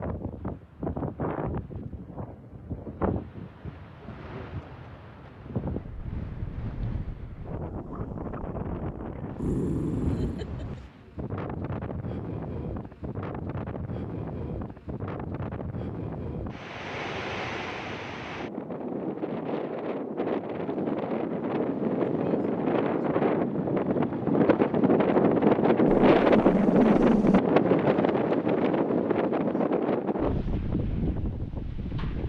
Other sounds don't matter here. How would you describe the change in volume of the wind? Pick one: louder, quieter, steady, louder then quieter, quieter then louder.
louder.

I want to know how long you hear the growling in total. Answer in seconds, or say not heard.
3 s.